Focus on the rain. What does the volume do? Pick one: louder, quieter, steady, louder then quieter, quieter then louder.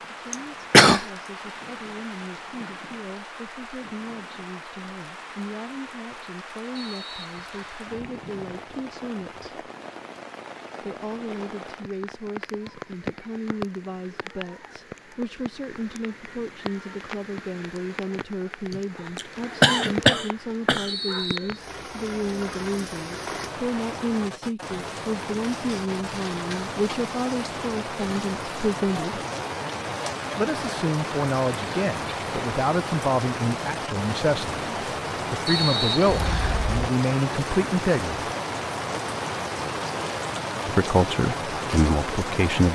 louder.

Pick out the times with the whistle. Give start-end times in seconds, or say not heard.
6.8-7.8, 20.9-21.6, 35.5-36.6.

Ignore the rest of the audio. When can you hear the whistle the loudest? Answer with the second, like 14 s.
36 s.